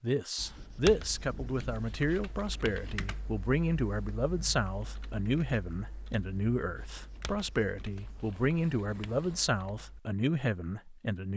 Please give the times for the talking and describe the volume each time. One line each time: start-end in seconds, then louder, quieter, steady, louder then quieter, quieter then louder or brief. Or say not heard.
0.0-11.3 steady.